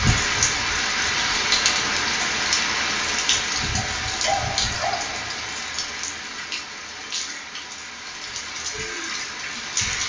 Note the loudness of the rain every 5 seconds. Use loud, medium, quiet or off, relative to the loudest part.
loud, medium.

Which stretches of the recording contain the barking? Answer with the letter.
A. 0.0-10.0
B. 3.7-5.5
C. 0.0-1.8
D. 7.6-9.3
B.